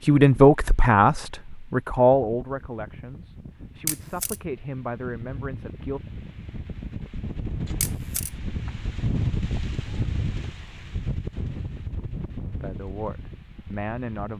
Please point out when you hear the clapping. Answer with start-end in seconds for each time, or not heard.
not heard.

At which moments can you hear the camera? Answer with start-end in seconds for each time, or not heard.
3.9-4.4, 7.8-8.3.